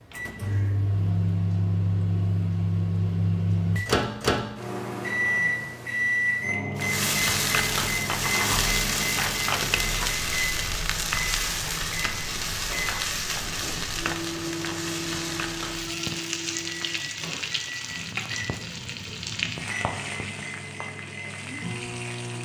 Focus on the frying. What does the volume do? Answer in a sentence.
The loudness of the frying goes down.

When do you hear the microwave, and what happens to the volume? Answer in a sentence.
You can hear the microwave from 0.1 to 22.3 s, getting quieter.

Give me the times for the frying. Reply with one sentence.
The frying can be heard from 6.8 to 22.3 s.